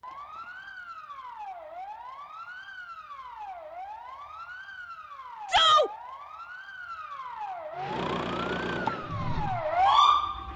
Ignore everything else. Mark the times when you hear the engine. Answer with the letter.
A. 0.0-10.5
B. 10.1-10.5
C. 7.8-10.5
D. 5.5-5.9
C.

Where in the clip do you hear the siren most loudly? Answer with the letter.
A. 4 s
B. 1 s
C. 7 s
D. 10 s
D.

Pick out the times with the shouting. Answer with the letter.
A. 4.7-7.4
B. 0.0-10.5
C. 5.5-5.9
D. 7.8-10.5
C.